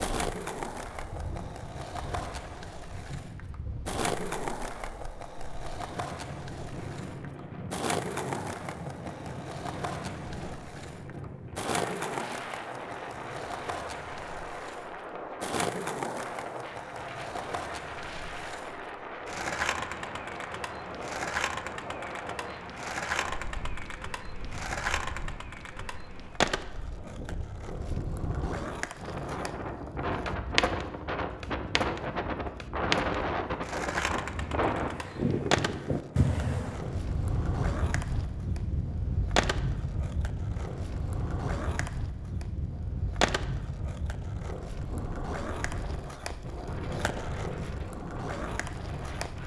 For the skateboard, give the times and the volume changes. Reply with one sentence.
The skateboard can be heard from 0.0 to 49.4 s, at a steady volume.